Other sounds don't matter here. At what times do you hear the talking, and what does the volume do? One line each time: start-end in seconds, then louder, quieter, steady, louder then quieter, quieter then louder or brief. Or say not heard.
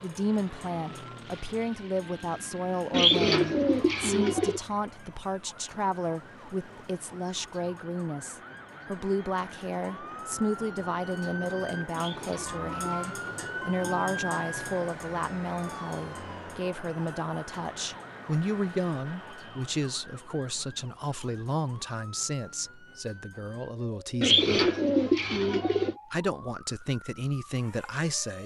0.0-24.5 steady
26.1-28.4 brief.